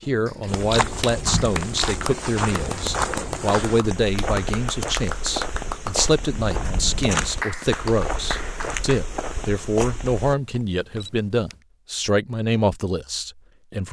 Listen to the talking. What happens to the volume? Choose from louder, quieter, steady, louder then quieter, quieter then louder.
steady.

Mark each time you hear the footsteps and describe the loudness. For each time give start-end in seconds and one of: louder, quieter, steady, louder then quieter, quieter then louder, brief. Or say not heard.
0.5-10.3 steady.